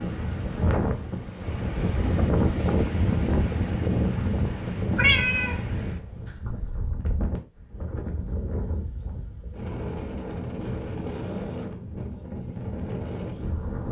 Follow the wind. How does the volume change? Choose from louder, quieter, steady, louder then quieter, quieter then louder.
quieter.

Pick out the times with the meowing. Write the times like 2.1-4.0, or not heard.
5.0-5.6.